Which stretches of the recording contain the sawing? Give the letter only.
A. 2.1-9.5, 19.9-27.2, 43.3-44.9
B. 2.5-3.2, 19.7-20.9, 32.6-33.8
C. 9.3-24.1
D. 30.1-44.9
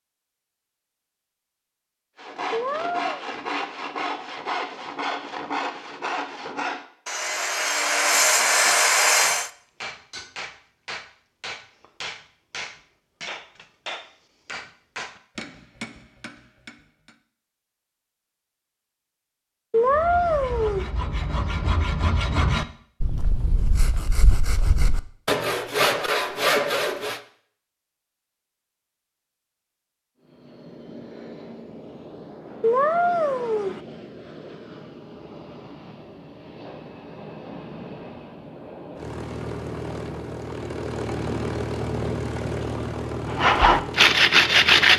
A.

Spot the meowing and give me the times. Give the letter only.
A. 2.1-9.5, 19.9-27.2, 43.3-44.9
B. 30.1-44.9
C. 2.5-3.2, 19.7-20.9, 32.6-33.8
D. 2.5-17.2
C.